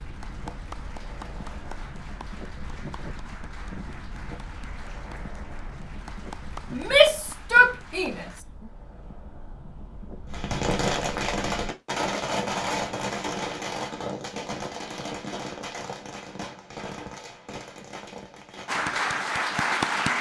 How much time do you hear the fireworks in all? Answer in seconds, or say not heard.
10 s.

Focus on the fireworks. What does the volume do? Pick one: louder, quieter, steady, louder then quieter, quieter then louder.
quieter.